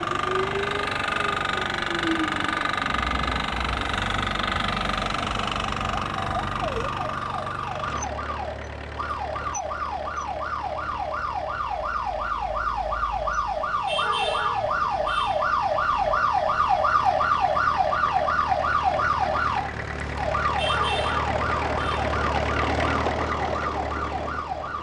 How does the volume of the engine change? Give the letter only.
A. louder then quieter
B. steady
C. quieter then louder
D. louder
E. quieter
C.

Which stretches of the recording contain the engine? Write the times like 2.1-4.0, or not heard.
0.0-24.7.